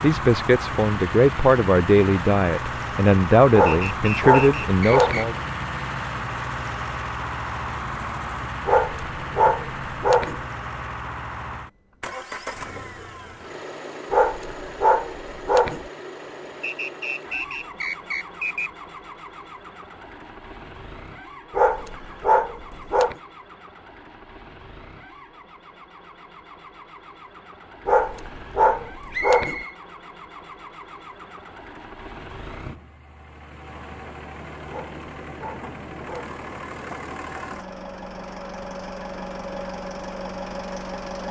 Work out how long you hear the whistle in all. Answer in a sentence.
You can hear the whistle for 4 seconds altogether.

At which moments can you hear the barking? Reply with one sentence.
You can hear the barking from 3.5 to 5.3 s, from 8.7 to 10.4 s, from 14.1 to 15.8 s, from 21.5 to 23.1 s, from 27.9 to 29.6 s and from 34.6 to 36.4 s.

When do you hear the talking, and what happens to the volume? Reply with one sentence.
The talking can be heard from 0.0 to 5.3 s, at a steady volume.